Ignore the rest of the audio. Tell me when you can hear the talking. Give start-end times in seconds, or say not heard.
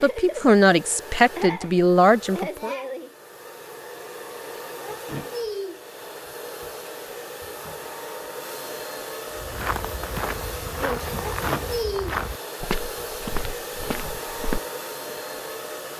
0.0-2.7.